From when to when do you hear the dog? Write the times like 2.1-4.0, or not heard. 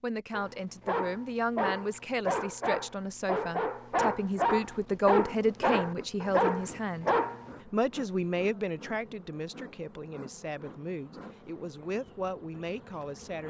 0.3-7.5.